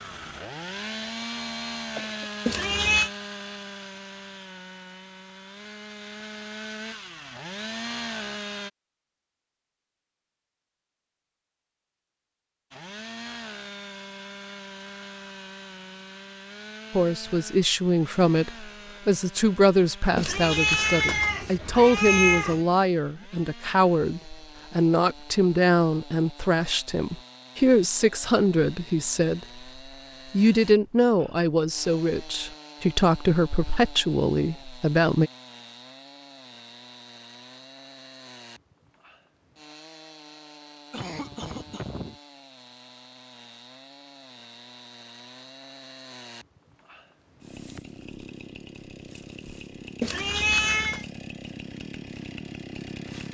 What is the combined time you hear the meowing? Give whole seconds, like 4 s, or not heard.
4 s.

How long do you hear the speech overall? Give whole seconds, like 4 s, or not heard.
18 s.